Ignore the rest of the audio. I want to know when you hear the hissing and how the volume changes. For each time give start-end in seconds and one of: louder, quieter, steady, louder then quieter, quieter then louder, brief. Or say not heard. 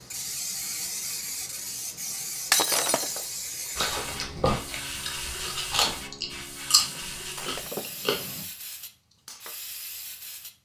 0.0-10.6 quieter.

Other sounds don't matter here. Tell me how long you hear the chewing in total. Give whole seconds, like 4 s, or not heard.
5 s.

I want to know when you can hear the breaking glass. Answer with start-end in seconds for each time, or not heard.
2.5-3.3, 7.2-8.1.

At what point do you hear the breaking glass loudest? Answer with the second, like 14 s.
3 s.